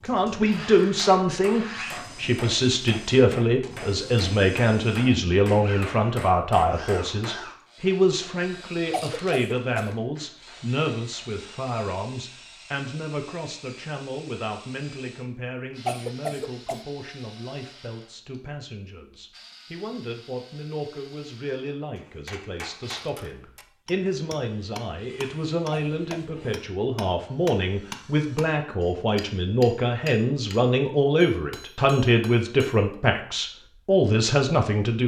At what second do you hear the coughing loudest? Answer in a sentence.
The volume of the coughing peaks at 16 seconds.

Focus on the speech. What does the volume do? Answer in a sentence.
The loudness of the speech goes down, then up.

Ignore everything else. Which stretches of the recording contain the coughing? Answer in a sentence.
You can hear the coughing from 8.9 to 9.9 s, from 15.8 to 16.9 s and from 25.7 to 26.4 s.